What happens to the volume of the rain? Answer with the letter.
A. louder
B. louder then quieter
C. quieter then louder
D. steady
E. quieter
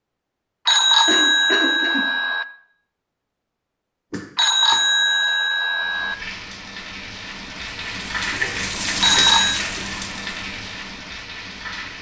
B.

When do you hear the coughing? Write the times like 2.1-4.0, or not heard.
1.1-2.0, 4.1-4.8, 8.2-10.1.